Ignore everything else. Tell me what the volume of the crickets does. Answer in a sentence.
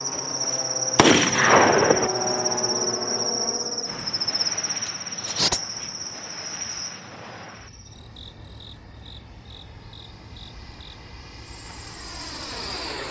The volume of the crickets goes down.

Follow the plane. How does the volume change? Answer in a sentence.
The volume of the plane goes down, then up.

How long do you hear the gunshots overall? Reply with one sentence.
You can hear the gunshots for 2 seconds altogether.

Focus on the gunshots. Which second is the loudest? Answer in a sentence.
The volume of the gunshots peaks at 2 seconds.